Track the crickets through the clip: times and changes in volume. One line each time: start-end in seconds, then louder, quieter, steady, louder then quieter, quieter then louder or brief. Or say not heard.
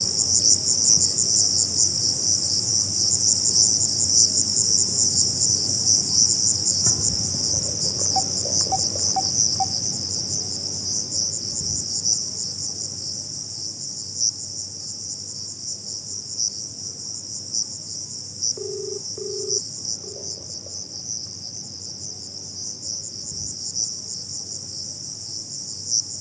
0.0-26.1 quieter.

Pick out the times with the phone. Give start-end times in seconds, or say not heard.
8.1-9.8, 18.6-20.4.